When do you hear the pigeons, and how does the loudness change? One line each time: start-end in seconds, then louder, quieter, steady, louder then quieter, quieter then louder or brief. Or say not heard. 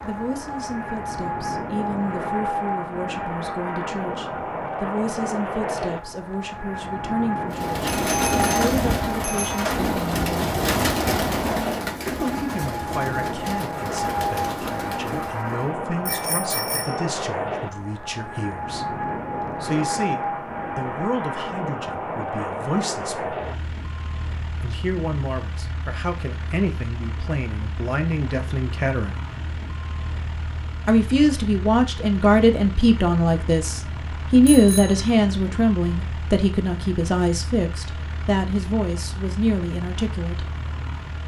7.5-15.8 quieter.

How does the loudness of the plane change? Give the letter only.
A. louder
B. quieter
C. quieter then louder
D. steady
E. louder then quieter
B.